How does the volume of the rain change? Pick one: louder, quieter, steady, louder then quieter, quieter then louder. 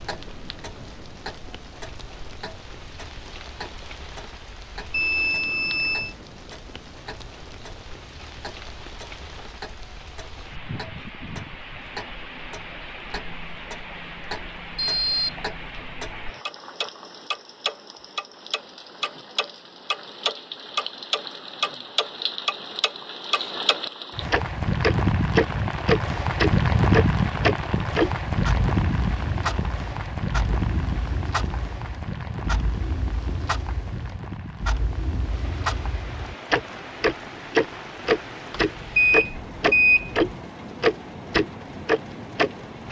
louder then quieter.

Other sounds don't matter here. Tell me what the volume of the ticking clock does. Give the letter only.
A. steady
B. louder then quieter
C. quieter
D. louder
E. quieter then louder
D.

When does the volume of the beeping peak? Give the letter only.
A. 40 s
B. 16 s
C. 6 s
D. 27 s
A.